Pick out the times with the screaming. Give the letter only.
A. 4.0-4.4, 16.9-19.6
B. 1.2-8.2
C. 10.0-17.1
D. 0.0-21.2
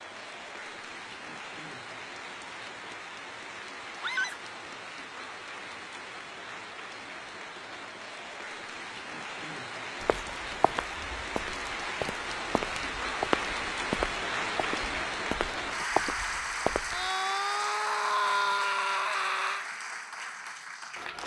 A.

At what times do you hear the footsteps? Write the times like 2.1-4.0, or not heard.
10.0-17.1.